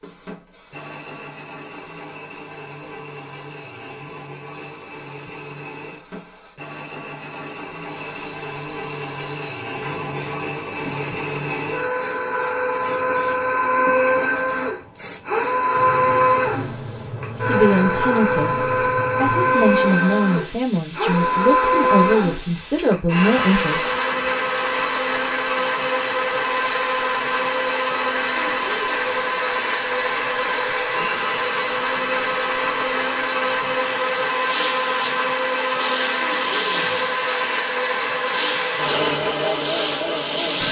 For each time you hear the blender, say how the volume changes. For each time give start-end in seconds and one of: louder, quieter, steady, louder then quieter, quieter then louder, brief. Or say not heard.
0.0-40.6 louder.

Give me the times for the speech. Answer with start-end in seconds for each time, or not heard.
17.4-18.6, 19.1-23.9.